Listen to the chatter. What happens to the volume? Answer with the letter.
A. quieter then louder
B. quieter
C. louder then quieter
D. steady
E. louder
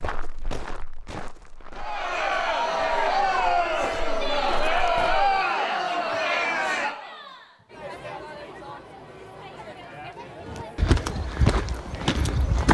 B.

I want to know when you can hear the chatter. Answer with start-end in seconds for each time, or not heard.
1.8-12.6.